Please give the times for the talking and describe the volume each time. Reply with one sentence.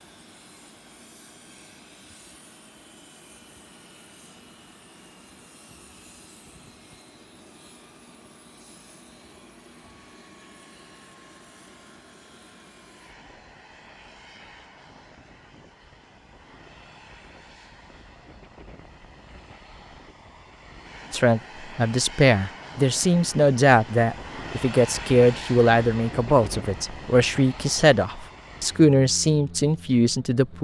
The talking can be heard from 21.1 to 30.5 s, at a steady volume.